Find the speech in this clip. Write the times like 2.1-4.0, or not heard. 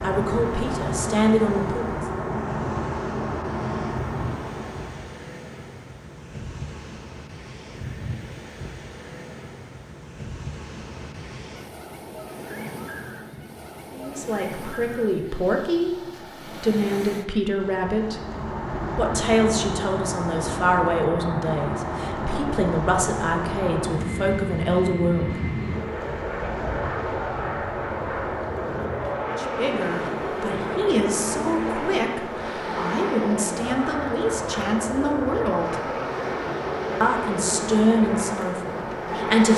0.0-1.9, 13.9-18.2, 18.9-25.4, 29.4-35.9, 37.0-39.5.